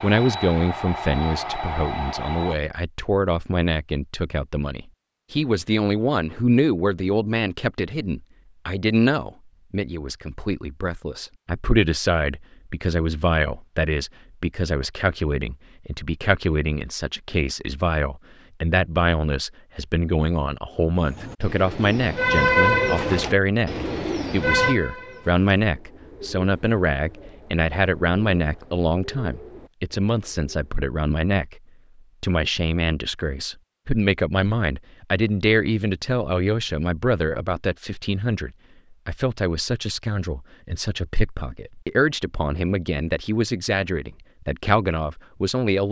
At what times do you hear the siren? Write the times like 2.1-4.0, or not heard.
not heard.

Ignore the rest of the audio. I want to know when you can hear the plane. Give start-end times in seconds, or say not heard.
0.0-2.5.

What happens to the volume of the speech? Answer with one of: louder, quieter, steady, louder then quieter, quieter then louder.
steady.